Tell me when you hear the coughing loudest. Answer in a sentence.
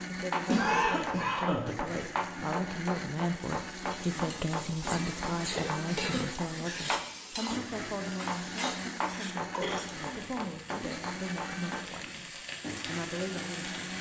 The volume of the coughing peaks at 1 second.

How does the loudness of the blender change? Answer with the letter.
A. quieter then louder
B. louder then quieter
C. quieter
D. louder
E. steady
E.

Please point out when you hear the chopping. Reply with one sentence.
The chopping can be heard from 0.3 to 7.5 s and from 8.2 to 11.8 s.